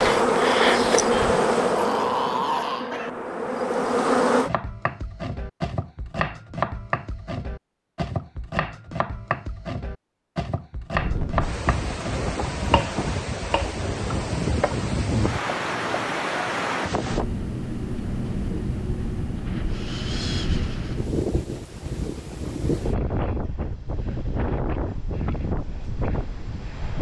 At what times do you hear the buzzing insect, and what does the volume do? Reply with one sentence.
You can hear the buzzing insect from 0.0 to 4.5 s, getting quieter then louder.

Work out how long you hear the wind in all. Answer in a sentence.
The wind can be heard for 16 seconds in total.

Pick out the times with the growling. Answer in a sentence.
The growling can be heard from 1.1 to 3.1 s.